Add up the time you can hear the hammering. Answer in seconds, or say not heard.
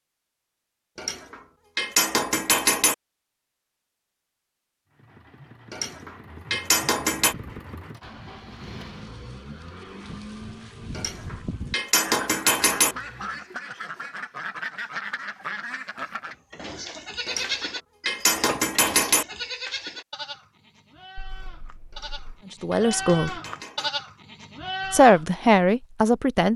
10 s.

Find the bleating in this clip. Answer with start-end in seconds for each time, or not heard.
16.2-25.2.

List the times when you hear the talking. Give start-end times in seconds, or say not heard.
22.6-23.3, 24.9-26.5.